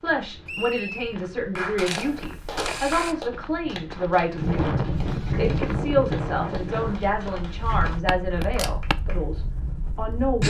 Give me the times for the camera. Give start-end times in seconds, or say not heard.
1.9-3.1, 8.4-8.9.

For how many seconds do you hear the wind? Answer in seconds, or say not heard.
6 s.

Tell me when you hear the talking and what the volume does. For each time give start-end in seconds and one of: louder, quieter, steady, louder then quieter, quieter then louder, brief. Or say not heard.
0.0-10.4 steady.